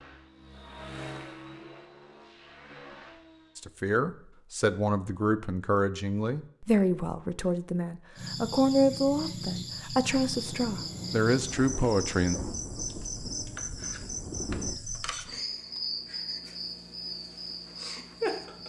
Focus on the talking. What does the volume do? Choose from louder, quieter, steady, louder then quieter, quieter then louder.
steady.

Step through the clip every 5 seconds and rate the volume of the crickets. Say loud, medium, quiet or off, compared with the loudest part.
off, loud, loud, loud.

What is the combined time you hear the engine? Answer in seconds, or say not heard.
4 s.